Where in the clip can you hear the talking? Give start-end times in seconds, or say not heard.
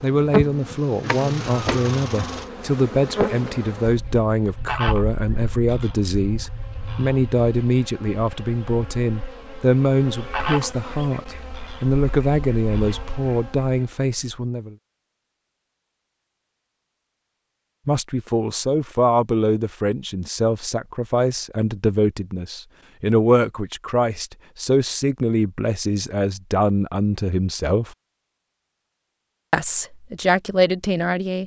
0.0-14.8, 17.9-27.9, 29.5-31.4.